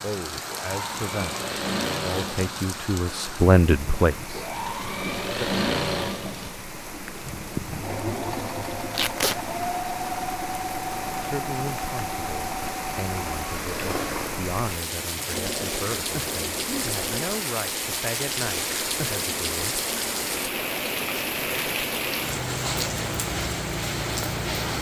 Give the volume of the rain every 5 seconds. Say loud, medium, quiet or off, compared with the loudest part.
medium, medium, medium, loud, loud.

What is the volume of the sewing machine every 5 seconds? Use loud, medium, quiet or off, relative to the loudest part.
loud, loud, loud, medium, medium.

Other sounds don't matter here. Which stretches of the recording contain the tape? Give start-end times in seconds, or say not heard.
8.9-9.4.